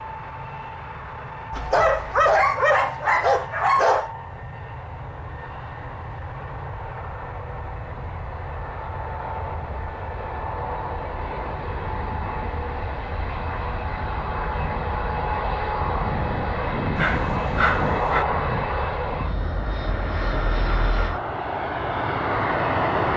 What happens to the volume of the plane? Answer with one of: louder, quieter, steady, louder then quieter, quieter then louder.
louder.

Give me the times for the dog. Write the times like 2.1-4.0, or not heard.
1.5-4.1, 16.9-18.2.